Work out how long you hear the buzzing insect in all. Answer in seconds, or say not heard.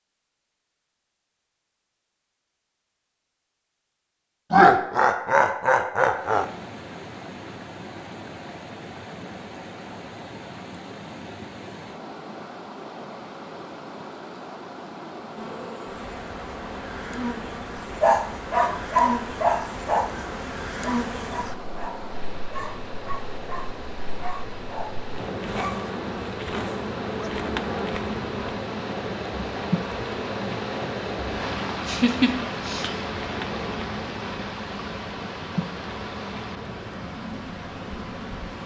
23 s.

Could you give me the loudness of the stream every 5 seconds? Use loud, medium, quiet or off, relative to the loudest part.
off, medium, medium, medium, medium, loud, loud, medium.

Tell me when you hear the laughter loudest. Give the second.
5 s.